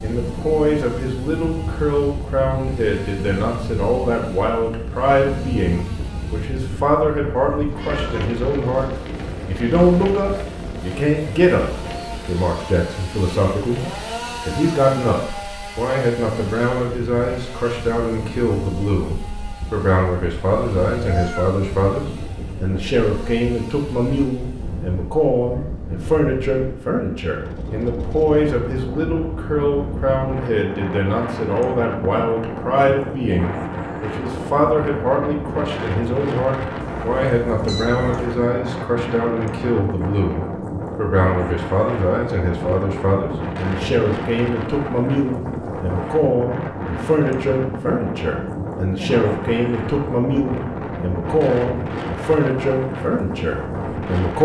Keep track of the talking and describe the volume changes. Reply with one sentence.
The volume of the talking stays about the same.